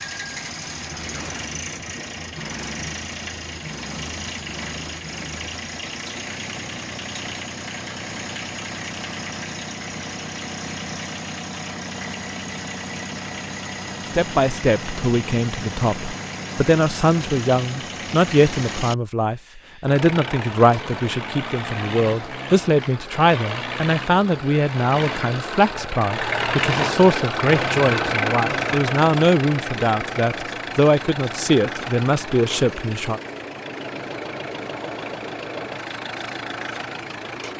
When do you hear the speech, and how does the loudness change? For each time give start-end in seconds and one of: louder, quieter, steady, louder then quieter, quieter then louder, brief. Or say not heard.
14.2-33.2 steady.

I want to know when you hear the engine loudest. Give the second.
28 s.